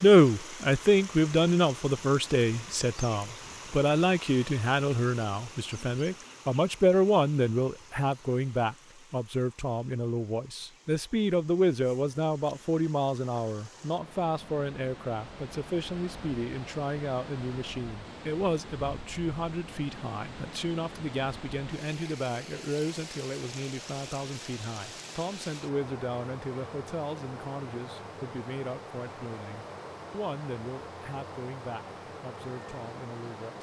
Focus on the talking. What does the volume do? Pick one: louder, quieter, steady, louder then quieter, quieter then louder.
quieter.